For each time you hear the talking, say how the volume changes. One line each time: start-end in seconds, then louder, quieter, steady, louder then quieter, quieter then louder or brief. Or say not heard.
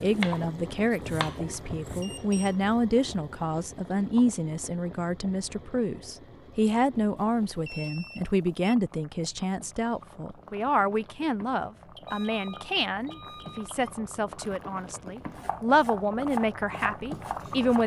0.0-17.8 steady.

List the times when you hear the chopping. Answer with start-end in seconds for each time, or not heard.
0.0-2.0, 15.3-17.8.